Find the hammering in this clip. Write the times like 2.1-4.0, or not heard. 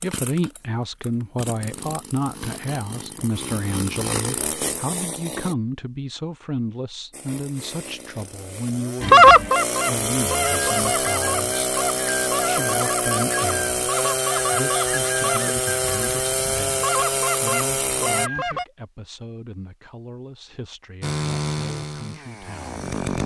not heard.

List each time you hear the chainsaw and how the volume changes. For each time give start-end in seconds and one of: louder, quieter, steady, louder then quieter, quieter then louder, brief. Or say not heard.
0.0-5.5 louder
7.1-18.3 louder
21.0-23.2 brief.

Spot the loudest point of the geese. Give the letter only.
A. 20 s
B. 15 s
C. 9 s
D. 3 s
C.